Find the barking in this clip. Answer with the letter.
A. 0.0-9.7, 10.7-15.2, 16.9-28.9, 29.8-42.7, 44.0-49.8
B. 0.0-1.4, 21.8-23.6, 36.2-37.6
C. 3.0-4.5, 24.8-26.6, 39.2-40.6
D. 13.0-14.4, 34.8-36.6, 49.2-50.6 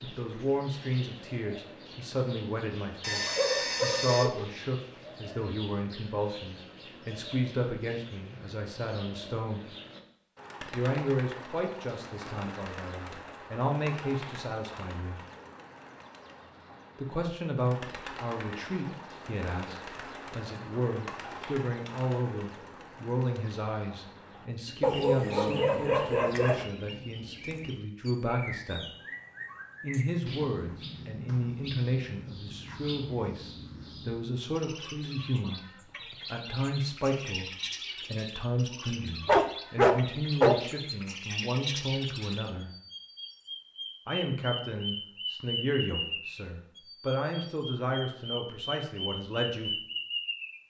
C.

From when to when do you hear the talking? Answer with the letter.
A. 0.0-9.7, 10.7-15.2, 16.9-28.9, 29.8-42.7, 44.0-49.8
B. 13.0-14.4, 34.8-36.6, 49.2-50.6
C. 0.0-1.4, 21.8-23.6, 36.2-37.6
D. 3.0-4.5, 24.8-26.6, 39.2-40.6
A.